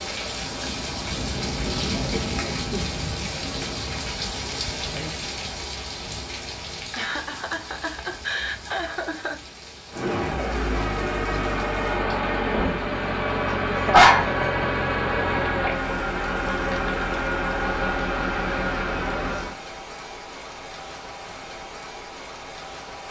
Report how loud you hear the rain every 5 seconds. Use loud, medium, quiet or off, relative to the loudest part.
loud, medium, medium, medium, medium.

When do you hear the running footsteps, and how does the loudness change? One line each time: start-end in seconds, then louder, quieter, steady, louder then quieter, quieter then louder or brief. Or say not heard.
not heard.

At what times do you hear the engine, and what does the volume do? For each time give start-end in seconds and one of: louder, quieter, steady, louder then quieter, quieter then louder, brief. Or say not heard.
9.9-19.6 steady.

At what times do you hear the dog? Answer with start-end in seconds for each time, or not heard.
13.4-14.3.